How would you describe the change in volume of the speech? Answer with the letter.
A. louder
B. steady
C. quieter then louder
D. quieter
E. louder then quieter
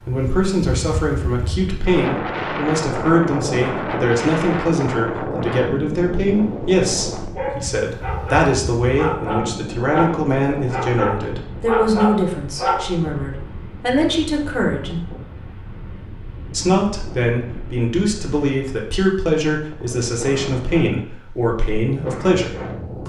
B.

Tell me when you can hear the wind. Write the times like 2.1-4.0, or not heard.
0.0-23.0.